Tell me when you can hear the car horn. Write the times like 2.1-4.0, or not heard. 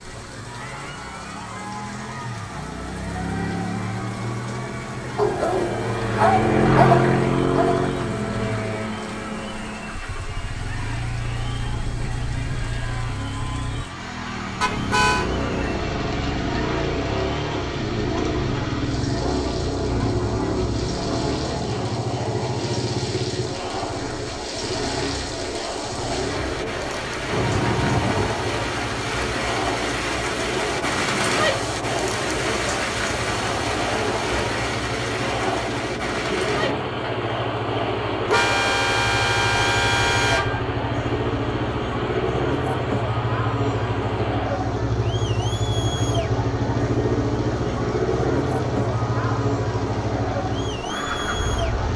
14.6-15.2, 27.3-28.3, 38.2-40.6.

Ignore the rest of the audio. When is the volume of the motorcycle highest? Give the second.
7 s.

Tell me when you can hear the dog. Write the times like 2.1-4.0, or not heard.
5.2-8.1.